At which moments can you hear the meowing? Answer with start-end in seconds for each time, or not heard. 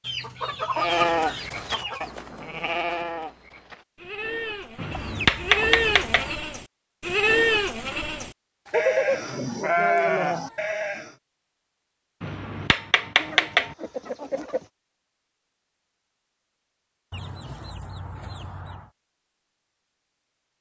not heard.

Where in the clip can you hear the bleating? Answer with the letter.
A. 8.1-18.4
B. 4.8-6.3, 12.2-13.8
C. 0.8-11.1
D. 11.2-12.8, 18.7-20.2
C.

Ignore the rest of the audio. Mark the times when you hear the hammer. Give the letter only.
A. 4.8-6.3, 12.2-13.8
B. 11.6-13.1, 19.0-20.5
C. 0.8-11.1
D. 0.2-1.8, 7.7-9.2
A.